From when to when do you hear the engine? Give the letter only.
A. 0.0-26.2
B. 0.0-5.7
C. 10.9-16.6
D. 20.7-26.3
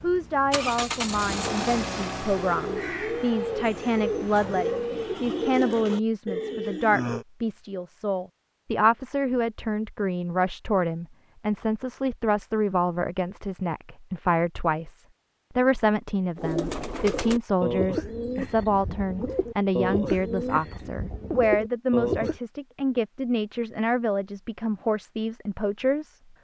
B.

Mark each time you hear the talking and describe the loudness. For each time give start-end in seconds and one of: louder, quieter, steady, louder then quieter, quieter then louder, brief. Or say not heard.
0.0-26.2 steady.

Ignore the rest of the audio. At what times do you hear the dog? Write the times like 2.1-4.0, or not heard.
not heard.